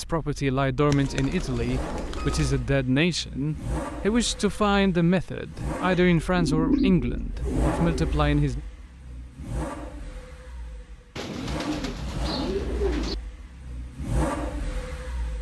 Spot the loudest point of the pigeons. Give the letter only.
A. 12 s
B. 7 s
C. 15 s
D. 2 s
B.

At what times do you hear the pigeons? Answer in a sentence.
You can hear the pigeons from 0.9 to 2.6 s, from 5.9 to 8.2 s and from 11.2 to 13.2 s.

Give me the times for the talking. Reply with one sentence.
The talking can be heard from 0.0 to 8.6 s.